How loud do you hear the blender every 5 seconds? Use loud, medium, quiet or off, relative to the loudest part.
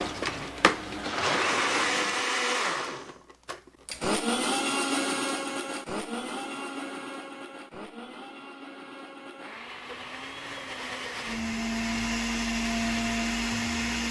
loud, medium, loud.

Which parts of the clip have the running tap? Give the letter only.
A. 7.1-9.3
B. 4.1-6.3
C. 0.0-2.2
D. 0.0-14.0
C.